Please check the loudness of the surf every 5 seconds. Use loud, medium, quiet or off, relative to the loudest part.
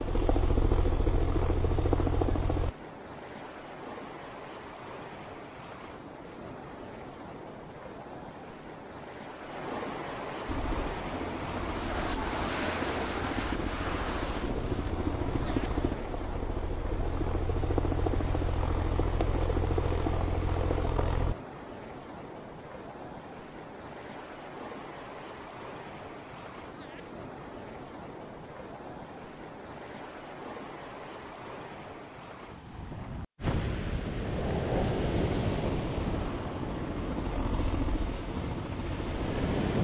medium, medium, loud, medium, medium, medium, loud, loud.